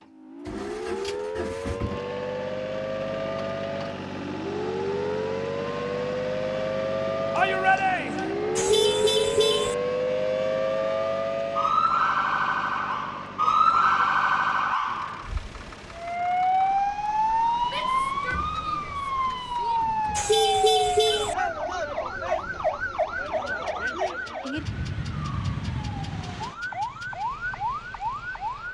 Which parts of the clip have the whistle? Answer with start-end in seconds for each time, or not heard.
not heard.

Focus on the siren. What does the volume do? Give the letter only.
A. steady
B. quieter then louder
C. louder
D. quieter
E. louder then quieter
E.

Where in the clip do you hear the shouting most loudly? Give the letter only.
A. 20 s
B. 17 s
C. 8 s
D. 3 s
C.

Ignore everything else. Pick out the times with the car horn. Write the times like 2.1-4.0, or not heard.
8.6-9.8, 20.1-21.4.